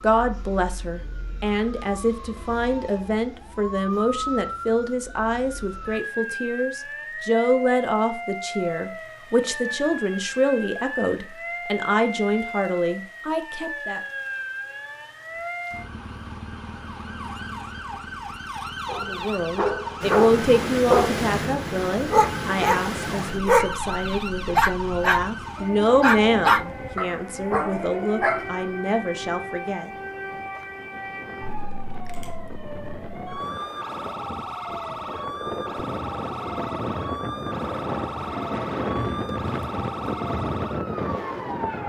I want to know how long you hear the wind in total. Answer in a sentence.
You can hear the wind for 22 seconds altogether.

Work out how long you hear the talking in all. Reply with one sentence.
You can hear the talking for 25 seconds altogether.